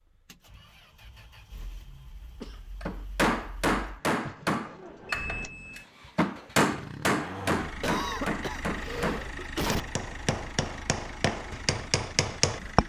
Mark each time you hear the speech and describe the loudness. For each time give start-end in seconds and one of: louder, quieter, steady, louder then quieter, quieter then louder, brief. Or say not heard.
not heard.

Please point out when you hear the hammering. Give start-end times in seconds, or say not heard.
2.8-12.8.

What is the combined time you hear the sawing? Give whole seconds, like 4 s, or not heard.
not heard.